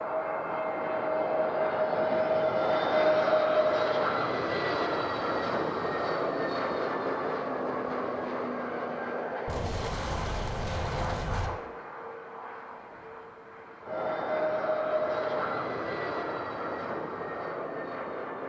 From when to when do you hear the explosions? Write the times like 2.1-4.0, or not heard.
9.4-11.5.